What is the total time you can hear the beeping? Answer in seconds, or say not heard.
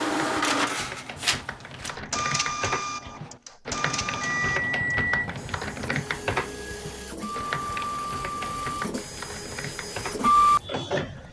2 s.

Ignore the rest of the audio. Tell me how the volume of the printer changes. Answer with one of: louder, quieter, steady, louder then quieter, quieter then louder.
quieter then louder.